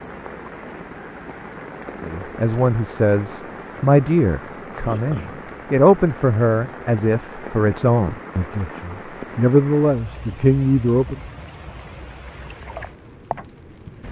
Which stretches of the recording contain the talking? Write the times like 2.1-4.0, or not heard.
2.0-11.2.